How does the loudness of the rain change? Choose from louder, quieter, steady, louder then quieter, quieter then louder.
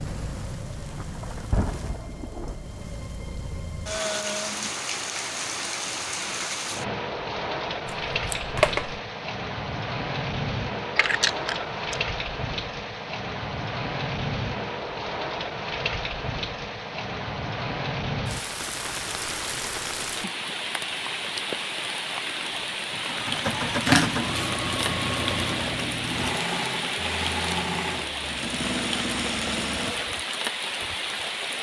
steady.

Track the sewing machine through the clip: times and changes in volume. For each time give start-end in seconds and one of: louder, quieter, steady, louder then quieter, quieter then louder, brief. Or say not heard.
22.4-30.1 steady.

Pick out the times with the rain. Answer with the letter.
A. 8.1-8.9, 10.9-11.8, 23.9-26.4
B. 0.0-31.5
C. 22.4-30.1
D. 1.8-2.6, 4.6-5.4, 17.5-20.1
B.